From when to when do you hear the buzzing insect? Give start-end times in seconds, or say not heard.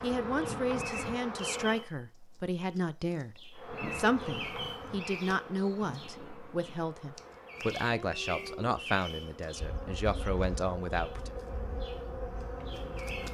0.0-1.9, 3.5-13.3.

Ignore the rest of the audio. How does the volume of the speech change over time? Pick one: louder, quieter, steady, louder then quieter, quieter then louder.
steady.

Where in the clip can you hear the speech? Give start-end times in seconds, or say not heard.
0.0-11.3.